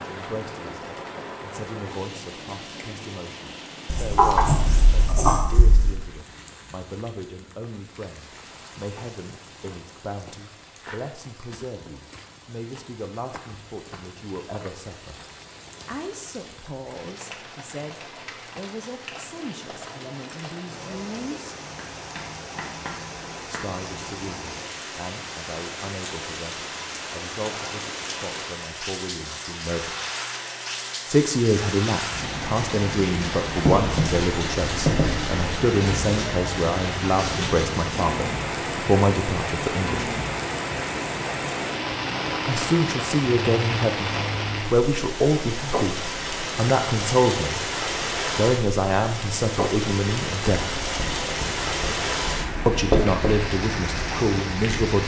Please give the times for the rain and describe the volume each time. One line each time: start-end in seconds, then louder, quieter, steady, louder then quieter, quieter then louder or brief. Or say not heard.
0.0-55.0 louder.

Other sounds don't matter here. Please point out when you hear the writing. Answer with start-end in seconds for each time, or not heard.
3.9-6.0, 21.8-23.6, 33.6-35.4, 50.5-53.4.